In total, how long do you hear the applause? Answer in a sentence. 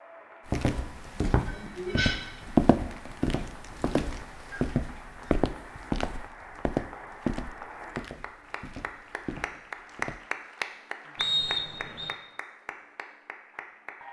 The applause can be heard for 14 seconds in total.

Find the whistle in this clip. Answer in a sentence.
You can hear the whistle from 11.2 to 12.2 s.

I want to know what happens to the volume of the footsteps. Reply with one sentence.
The loudness of the footsteps goes down.